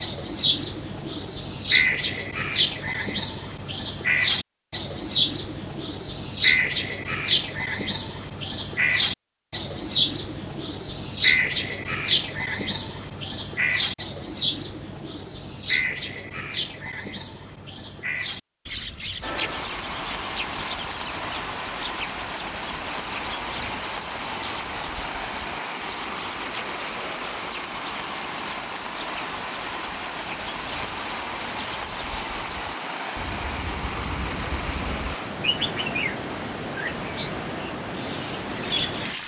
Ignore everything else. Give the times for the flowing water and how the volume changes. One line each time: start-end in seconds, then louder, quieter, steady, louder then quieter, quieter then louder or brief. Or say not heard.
19.2-39.2 steady.